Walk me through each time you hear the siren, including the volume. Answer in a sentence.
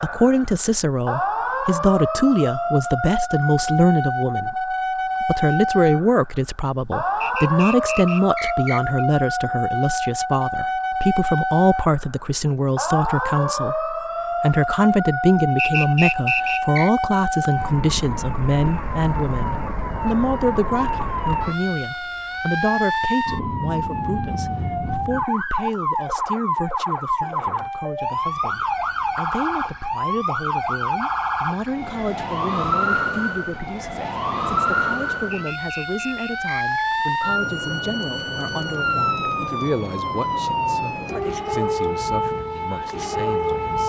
The siren can be heard from 0.0 to 43.8 s, at a steady volume.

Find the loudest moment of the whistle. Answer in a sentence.
The volume of the whistle peaks at 16 seconds.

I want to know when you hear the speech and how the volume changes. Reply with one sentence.
The speech can be heard from 0.0 to 43.8 s, getting quieter.